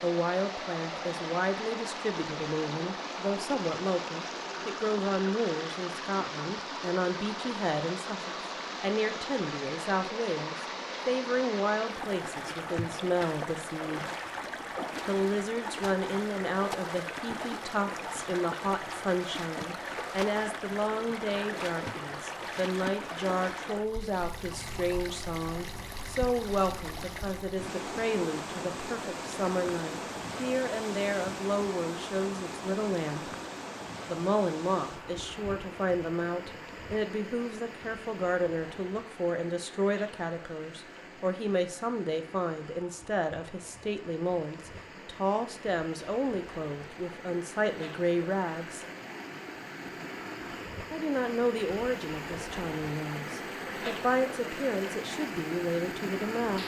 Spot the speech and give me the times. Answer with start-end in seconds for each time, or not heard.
0.0-14.0, 15.1-33.3, 34.0-48.9, 50.9-56.6.